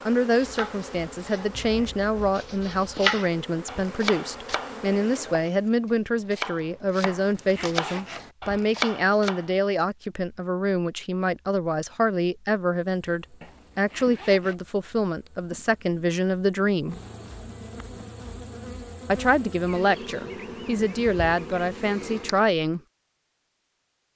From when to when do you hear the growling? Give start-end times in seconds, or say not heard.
not heard.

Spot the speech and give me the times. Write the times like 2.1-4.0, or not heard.
0.0-16.9, 19.1-22.8.